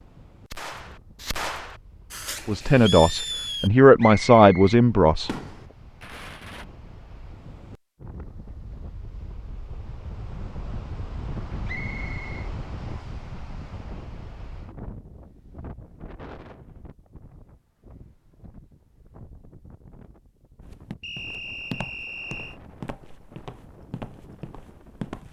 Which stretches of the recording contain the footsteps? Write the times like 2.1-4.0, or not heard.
20.6-25.2.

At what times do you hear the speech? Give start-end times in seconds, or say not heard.
2.5-5.3.